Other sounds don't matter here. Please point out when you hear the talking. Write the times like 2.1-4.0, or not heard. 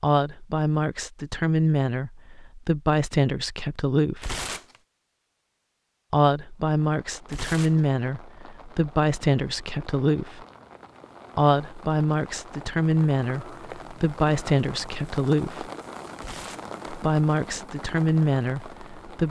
0.0-4.3, 6.1-10.4, 11.3-15.7, 16.9-19.2.